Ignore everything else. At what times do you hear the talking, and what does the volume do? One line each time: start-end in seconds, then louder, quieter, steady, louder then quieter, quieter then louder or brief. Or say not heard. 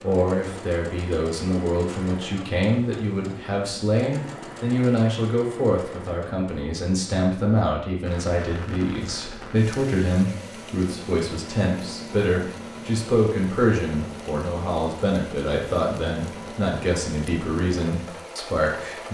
0.0-19.0 steady.